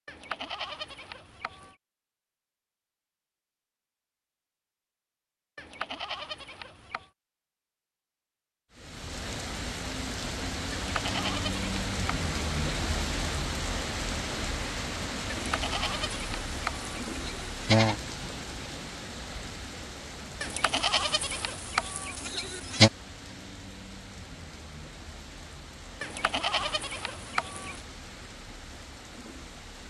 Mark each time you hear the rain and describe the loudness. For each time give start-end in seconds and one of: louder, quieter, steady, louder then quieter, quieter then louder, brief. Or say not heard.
8.7-29.8 quieter.